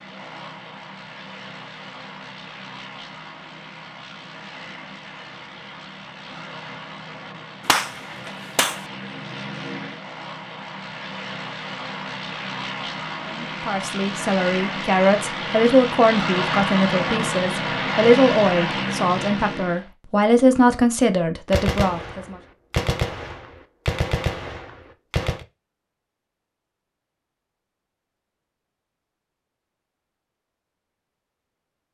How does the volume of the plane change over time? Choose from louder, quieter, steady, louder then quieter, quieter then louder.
louder.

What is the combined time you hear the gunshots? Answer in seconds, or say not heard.
5 s.